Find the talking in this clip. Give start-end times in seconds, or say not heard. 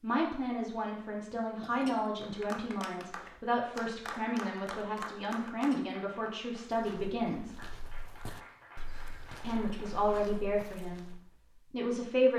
0.0-7.5, 9.4-12.3.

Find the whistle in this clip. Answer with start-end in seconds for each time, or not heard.
not heard.